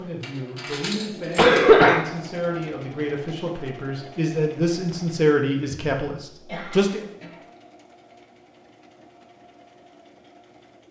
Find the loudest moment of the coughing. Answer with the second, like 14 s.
2 s.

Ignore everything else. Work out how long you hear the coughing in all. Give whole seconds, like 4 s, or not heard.
2 s.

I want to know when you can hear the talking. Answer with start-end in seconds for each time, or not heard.
0.0-7.0.